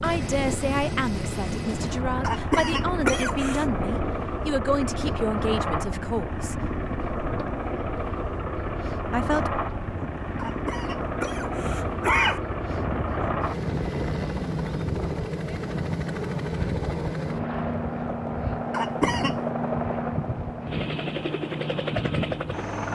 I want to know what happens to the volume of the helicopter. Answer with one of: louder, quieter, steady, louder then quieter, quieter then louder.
steady.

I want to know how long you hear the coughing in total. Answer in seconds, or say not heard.
4 s.